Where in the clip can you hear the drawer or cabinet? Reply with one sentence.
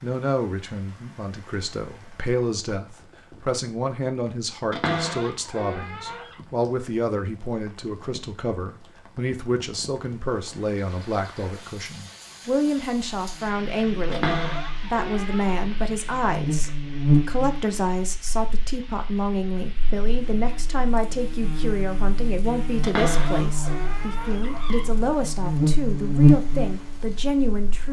You can hear the drawer or cabinet from 4.7 to 6.3 s, from 14.1 to 15.6 s and from 22.8 to 24.9 s.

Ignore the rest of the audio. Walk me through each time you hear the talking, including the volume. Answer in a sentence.
You can hear the talking from 0.0 to 27.8 s, at a steady volume.